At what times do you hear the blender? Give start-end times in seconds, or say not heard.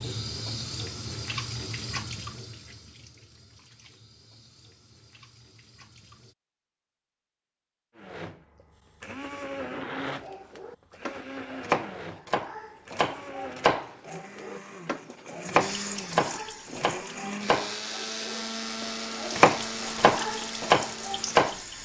8.0-21.7.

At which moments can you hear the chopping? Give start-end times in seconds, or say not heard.
10.2-21.6.